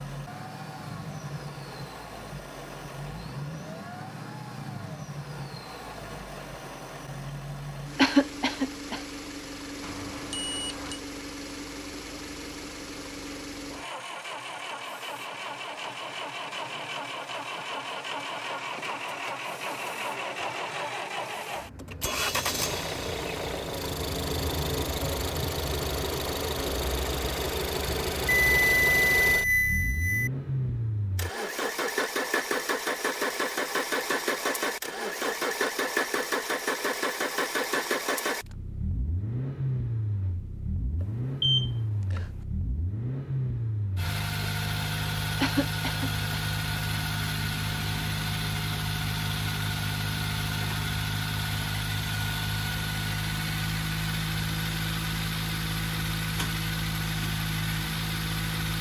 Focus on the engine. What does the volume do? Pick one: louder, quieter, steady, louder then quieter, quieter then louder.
louder.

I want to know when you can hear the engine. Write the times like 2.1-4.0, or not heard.
0.0-58.7.